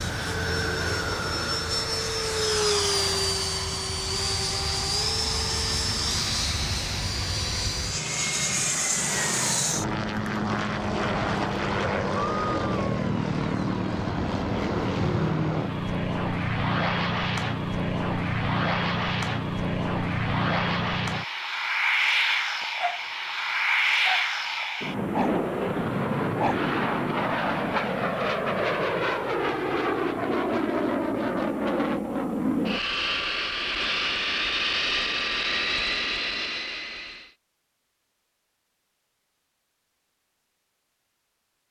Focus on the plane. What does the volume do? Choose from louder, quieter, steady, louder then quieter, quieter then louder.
steady.